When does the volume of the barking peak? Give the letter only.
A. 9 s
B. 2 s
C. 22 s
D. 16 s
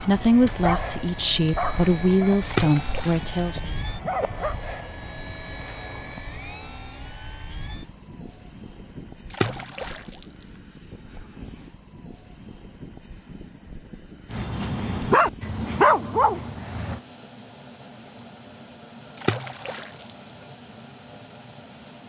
D.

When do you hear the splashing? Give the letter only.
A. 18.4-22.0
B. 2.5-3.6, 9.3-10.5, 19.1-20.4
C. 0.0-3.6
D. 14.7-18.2
B.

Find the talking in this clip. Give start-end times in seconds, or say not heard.
0.0-3.6.